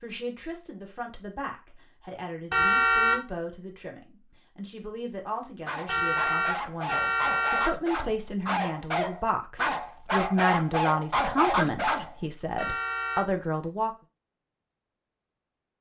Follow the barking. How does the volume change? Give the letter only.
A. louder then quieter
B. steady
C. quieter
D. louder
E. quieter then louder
D.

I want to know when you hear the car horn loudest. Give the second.
3 s.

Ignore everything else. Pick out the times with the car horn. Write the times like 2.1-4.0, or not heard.
2.5-3.2, 5.8-7.7, 12.6-13.2.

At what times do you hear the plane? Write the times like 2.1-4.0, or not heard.
not heard.